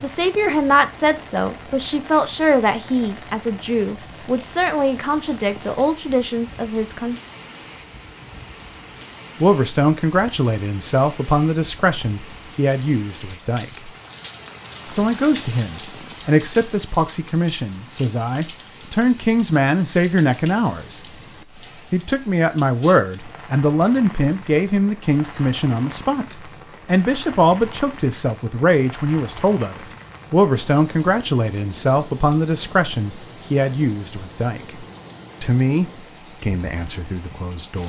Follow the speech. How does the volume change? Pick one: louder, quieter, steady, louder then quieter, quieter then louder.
steady.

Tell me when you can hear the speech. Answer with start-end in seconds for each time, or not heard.
0.0-7.2, 9.4-13.9, 14.9-21.0, 21.9-37.8.